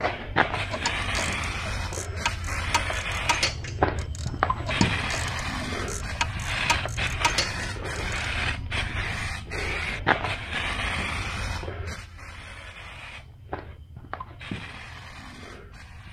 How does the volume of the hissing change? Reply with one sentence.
The loudness of the hissing goes down.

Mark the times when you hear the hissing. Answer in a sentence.
The hissing can be heard from 0.0 to 16.0 s.